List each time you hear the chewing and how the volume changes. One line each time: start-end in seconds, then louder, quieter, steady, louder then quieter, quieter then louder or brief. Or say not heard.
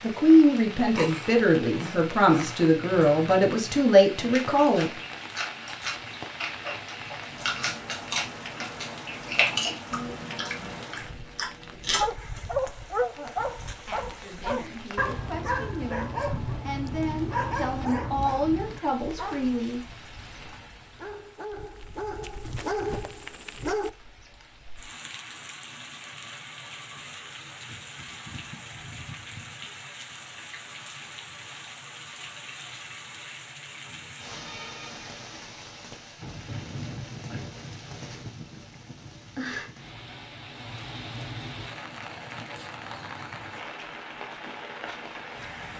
0.5-12.0 louder.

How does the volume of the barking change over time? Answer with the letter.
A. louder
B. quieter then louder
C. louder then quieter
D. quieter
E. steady
B.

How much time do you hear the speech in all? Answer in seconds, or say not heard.
12 s.